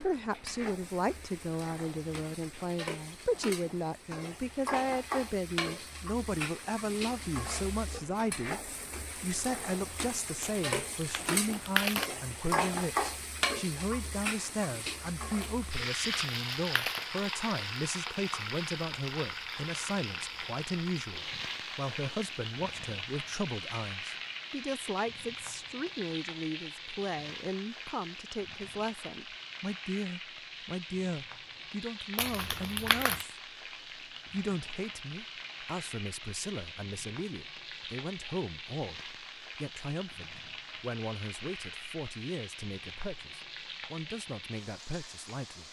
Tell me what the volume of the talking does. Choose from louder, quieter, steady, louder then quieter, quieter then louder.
quieter.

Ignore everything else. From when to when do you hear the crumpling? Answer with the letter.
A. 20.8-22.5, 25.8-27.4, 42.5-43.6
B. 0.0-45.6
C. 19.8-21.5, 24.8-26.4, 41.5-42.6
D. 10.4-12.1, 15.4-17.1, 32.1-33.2
D.